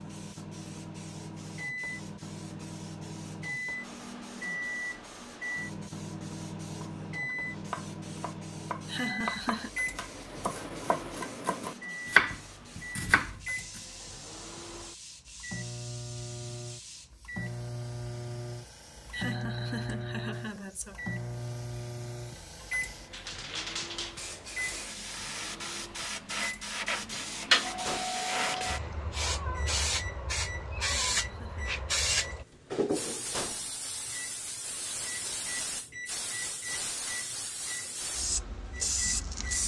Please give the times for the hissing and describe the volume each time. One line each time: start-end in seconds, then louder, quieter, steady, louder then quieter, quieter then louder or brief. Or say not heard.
0.0-39.6 louder.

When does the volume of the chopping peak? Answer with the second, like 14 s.
12 s.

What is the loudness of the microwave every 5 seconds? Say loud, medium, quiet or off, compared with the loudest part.
loud, loud, medium, loud, loud, medium, medium, medium.